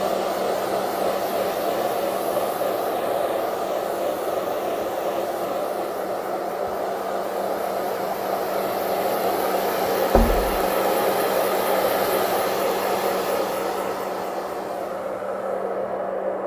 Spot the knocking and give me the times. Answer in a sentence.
The knocking can be heard from 10.1 to 10.5 s.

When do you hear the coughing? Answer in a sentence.
The coughing can't be heard in this clip.